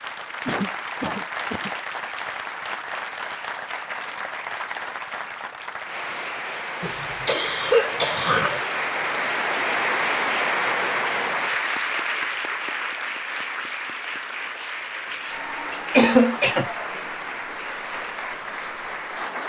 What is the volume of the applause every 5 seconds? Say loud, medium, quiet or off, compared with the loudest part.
medium, loud, loud, medium.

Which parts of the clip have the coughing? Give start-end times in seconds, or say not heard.
0.5-1.7, 6.8-8.6, 15.1-16.6.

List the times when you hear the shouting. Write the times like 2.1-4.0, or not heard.
not heard.